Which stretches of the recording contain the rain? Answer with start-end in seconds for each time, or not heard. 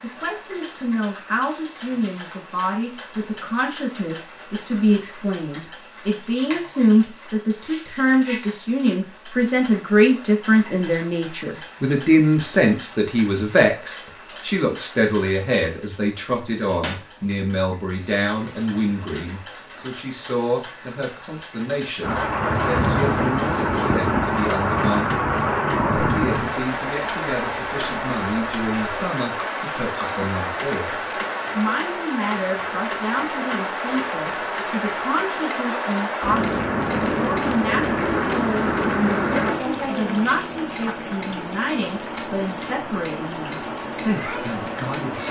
22.0-45.2.